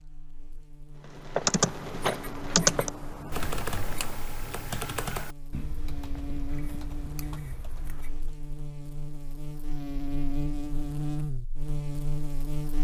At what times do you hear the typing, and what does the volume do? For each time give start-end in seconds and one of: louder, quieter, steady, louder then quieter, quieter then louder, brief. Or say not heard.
1.1-8.3 quieter.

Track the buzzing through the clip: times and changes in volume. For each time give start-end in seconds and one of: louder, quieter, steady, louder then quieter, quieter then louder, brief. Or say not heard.
0.0-12.7 louder.